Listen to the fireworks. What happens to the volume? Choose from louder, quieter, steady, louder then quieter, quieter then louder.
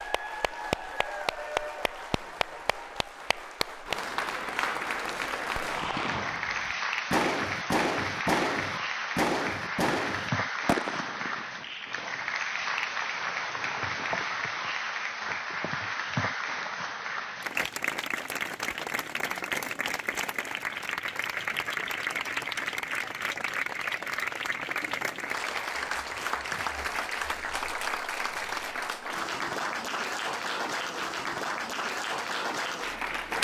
quieter.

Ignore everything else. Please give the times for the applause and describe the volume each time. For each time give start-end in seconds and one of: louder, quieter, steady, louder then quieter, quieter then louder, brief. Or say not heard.
0.0-33.3 steady.